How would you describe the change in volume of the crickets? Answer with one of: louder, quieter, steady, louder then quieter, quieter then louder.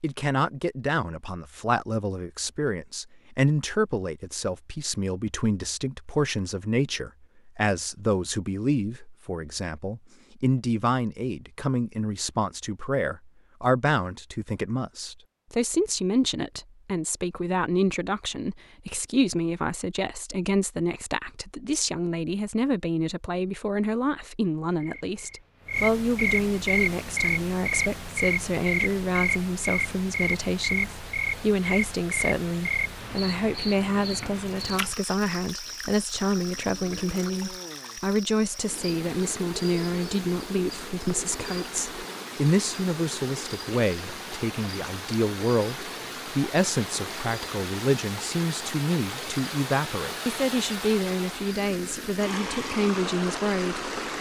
quieter.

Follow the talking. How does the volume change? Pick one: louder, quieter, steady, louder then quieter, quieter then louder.
steady.